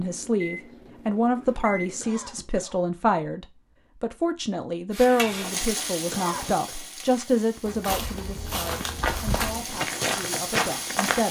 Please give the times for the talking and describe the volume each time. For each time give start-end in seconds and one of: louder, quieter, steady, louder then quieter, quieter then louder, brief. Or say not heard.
0.0-11.2 quieter.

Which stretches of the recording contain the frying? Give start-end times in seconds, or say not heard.
4.9-11.2.